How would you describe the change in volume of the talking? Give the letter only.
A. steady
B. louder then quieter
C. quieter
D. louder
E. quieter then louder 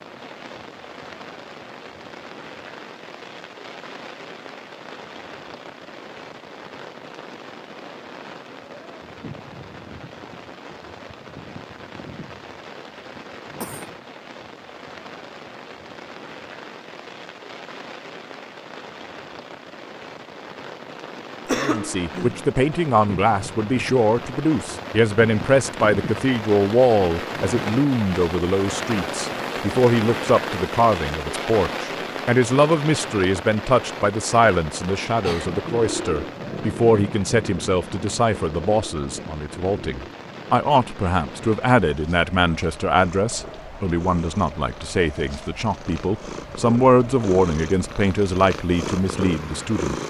A.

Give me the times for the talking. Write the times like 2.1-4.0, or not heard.
21.6-50.0.